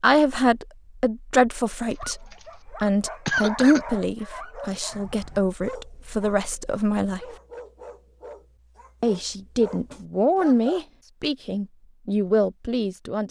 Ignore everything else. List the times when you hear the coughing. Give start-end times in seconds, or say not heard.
1.9-2.4, 3.2-3.9.